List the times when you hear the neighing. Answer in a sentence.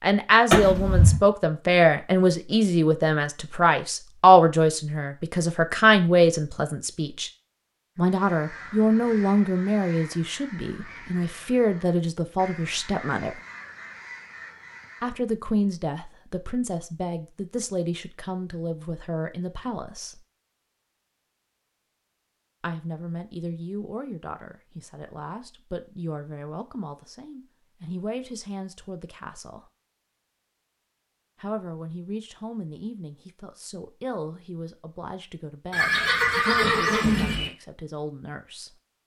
The neighing can be heard from 0.5 to 1.2 s and from 35.7 to 37.5 s.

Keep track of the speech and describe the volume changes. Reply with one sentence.
The volume of the speech goes down.